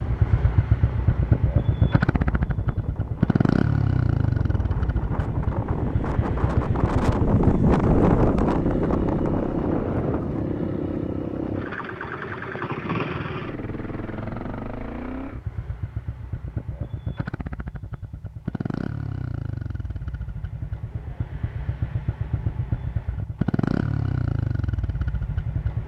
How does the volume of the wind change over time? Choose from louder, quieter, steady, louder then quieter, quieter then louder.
louder then quieter.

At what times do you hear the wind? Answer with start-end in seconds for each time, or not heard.
0.0-14.7.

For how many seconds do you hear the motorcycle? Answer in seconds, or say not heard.
26 s.